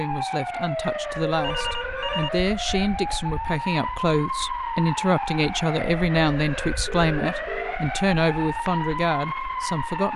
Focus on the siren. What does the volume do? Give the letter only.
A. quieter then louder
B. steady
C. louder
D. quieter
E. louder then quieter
B.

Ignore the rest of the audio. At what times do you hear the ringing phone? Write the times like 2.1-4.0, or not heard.
1.4-2.3, 6.8-7.8.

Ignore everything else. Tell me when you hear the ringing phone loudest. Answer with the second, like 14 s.
2 s.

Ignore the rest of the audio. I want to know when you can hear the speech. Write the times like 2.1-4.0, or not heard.
0.0-10.1.